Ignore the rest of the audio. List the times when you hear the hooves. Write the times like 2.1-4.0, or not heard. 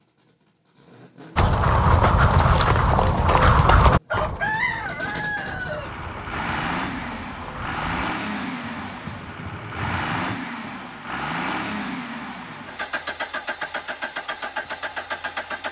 1.4-10.9.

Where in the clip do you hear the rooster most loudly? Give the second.
5 s.